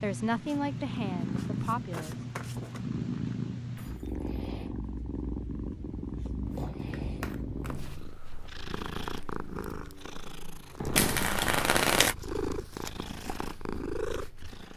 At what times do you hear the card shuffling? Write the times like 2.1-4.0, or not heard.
0.5-2.9, 6.5-8.0, 10.9-12.2.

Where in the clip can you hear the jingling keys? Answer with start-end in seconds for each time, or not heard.
3.8-4.2, 10.8-11.4.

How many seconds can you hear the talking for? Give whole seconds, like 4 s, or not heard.
2 s.